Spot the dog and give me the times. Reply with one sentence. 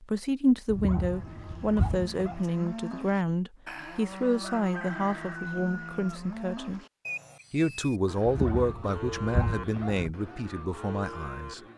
The dog can be heard from 0.7 to 2.4 s and from 8.2 to 10.1 s.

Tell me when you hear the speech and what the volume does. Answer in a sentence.
You can hear the speech from 0.0 to 6.8 s, getting quieter; and from 7.5 to 11.6 s, getting quieter.